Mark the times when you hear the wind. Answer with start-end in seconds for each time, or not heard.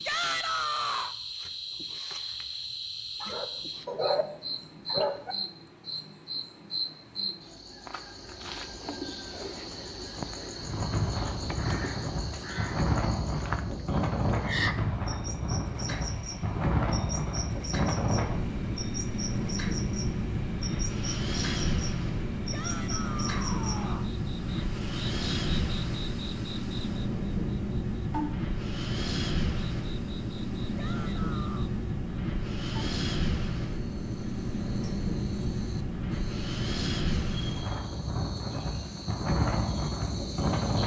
10.6-40.8.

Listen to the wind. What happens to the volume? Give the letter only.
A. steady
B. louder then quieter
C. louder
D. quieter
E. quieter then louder
A.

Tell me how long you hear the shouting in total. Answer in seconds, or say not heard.
4 s.